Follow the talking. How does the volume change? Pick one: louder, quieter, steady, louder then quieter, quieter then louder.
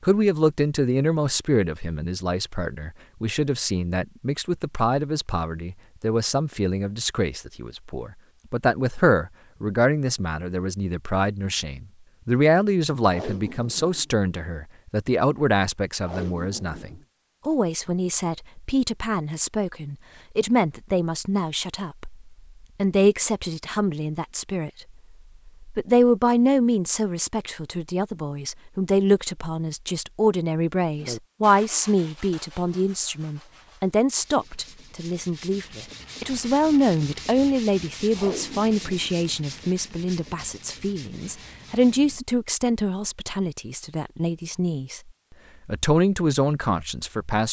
steady.